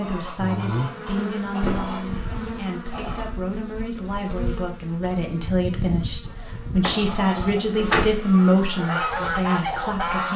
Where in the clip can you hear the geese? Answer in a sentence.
The geese can be heard from 0.0 to 3.2 s and from 6.2 to 10.3 s.